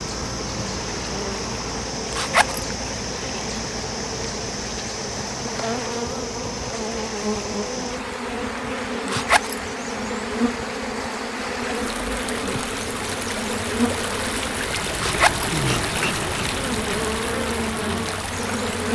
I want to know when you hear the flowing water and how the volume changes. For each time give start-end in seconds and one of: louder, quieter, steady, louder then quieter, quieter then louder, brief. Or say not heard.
0.0-18.8 louder.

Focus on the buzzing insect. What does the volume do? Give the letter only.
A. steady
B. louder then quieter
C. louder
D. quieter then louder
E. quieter
A.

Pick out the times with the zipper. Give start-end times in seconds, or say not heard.
2.1-2.6, 9.1-9.6, 14.9-15.5.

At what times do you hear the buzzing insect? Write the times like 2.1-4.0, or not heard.
0.0-18.8.